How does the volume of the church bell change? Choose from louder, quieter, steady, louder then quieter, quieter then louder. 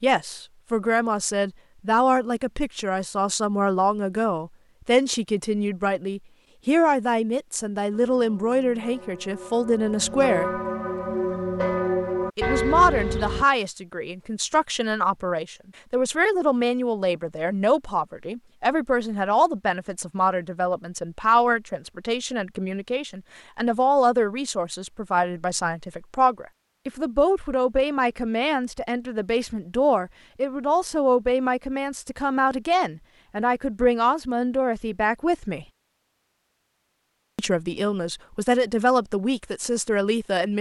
louder.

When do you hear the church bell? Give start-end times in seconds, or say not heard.
7.9-13.4.